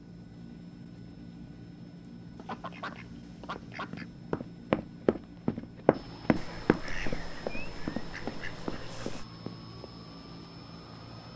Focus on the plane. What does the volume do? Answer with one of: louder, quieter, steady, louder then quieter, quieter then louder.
steady.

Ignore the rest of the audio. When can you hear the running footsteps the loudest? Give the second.
5 s.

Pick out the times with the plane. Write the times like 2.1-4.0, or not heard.
0.0-11.3.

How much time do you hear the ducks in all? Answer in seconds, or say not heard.
5 s.